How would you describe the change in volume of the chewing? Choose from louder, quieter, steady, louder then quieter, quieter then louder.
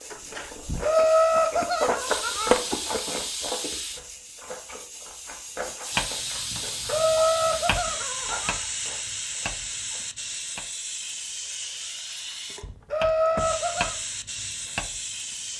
quieter.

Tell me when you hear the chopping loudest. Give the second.
6 s.